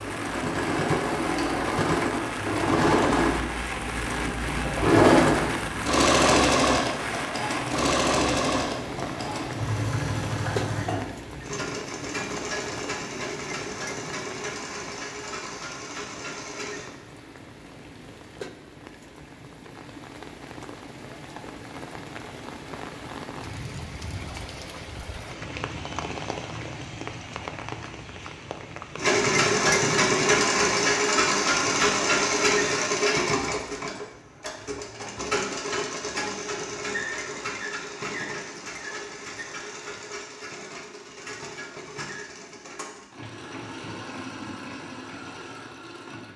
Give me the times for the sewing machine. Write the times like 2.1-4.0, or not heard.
0.0-16.9, 28.9-46.3.